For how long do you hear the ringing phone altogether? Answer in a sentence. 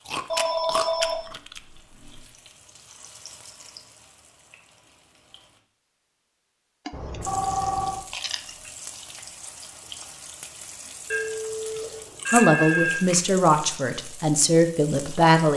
The ringing phone can be heard for 5 seconds in total.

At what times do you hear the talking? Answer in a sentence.
The talking can be heard from 12.3 to 15.5 s.